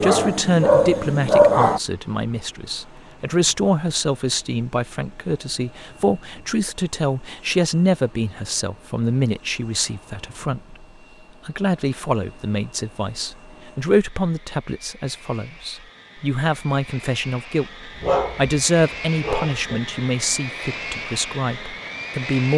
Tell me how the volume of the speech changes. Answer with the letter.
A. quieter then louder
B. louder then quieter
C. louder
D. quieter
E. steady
E.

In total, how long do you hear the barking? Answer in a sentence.
You can hear the barking for 4 seconds altogether.